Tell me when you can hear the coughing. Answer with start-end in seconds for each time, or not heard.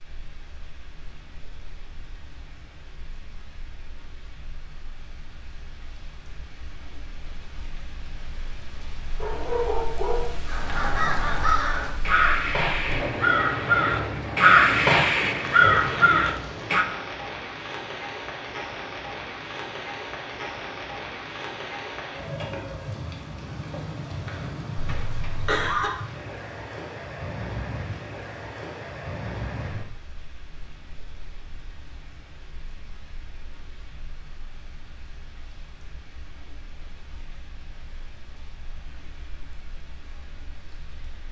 24.8-25.9.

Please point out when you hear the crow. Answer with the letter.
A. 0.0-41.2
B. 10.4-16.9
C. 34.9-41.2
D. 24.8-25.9
B.